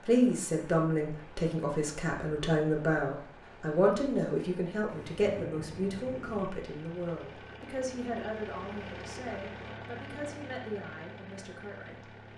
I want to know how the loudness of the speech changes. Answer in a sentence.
The volume of the speech goes down.